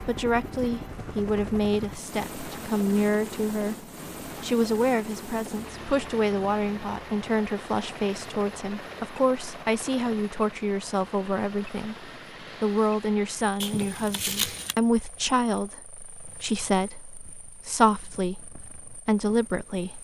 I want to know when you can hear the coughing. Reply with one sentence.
The coughing can be heard from 13.6 to 14.8 s.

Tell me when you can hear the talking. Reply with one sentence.
You can hear the talking from 0.1 to 3.8 s and from 4.4 to 19.9 s.